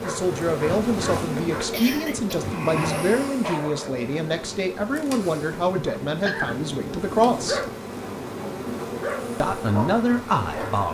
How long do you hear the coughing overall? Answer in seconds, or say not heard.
2 s.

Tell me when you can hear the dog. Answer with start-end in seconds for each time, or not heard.
0.0-1.7, 2.8-4.0, 5.8-10.8.